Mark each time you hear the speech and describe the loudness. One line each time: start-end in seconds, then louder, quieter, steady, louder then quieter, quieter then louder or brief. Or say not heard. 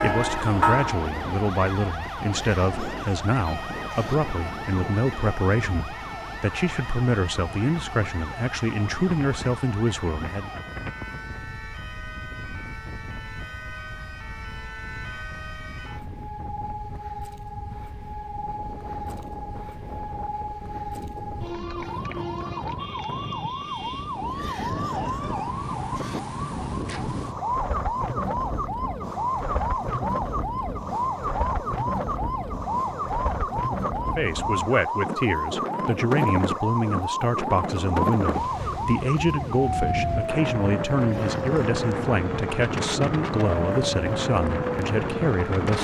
0.0-10.5 steady
34.1-45.7 steady.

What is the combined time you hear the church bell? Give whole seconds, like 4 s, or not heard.
2 s.